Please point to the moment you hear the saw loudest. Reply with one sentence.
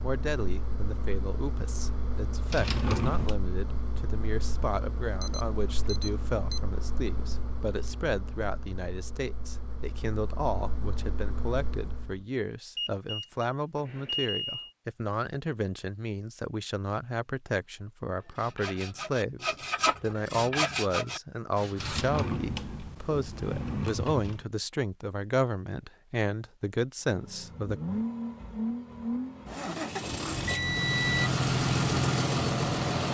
The volume of the saw peaks at 21 seconds.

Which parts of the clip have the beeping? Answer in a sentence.
You can hear the beeping from 5.2 to 6.6 s, from 12.8 to 14.7 s and from 30.0 to 31.3 s.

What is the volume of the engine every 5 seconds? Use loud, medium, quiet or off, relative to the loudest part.
quiet, quiet, quiet, off, off, medium, loud.